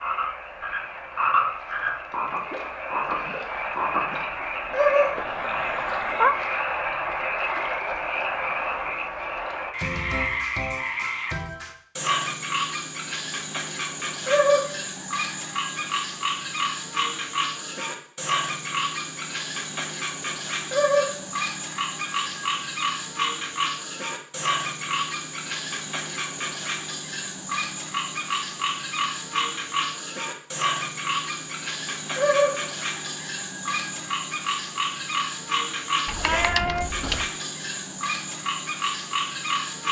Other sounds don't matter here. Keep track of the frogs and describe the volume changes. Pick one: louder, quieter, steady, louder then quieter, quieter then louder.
steady.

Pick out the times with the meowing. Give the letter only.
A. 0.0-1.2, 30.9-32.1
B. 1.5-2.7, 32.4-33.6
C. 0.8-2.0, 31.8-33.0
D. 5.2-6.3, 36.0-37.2
D.